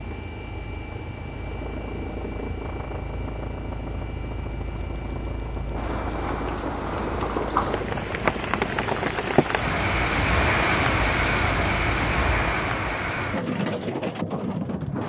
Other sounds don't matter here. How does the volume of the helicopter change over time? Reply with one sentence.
The volume of the helicopter stays about the same.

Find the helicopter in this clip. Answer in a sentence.
The helicopter can be heard from 0.0 to 12.4 s.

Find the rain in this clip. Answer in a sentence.
The rain can be heard from 5.8 to 15.0 s.